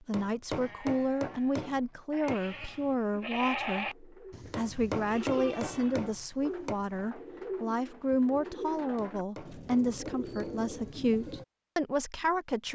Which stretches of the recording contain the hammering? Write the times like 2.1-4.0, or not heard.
0.1-2.4, 4.5-6.8, 8.9-10.6.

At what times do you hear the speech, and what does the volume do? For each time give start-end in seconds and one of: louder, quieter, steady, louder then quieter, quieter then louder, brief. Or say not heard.
0.1-12.7 steady.